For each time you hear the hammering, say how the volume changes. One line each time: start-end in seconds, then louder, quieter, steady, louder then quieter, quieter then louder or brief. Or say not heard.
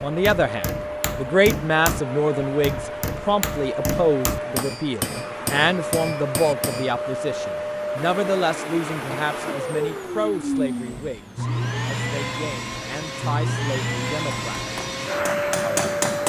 0.0-6.9 steady
14.1-16.2 brief.